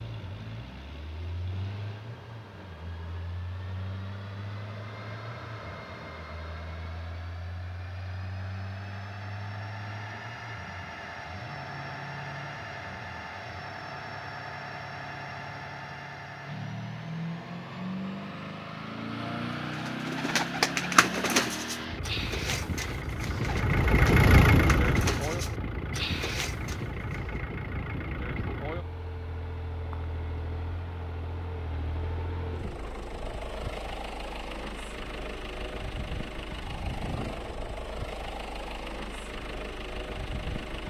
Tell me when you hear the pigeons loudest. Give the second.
21 s.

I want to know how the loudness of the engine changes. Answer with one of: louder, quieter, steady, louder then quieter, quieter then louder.
louder then quieter.